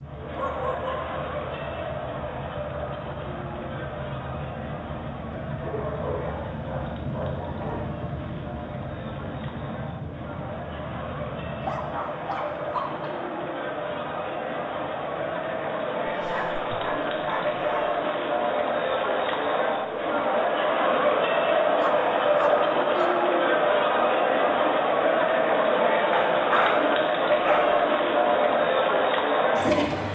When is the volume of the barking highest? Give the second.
27 s.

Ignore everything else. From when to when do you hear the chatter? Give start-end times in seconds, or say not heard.
0.0-30.0.